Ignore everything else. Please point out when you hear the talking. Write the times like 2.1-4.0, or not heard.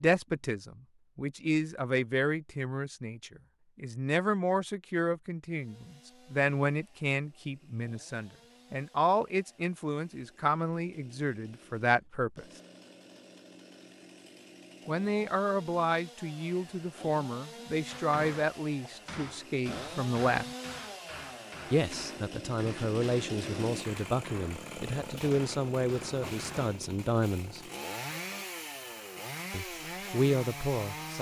0.0-12.4, 14.8-20.6, 21.7-27.6, 29.5-31.1.